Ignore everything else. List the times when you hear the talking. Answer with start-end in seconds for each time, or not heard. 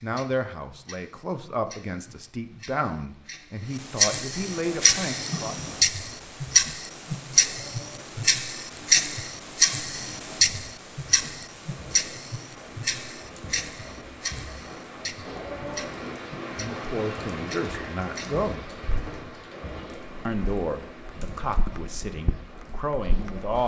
0.0-5.5, 16.6-18.7, 20.2-23.6.